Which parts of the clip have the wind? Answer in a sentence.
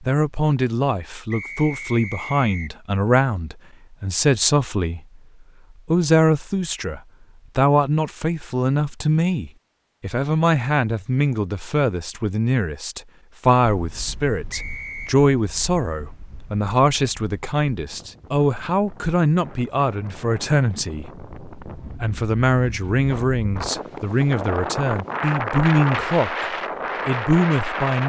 The wind can be heard from 13.6 to 28.0 s.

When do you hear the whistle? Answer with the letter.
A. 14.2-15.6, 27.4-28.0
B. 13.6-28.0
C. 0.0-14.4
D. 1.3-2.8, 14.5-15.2
D.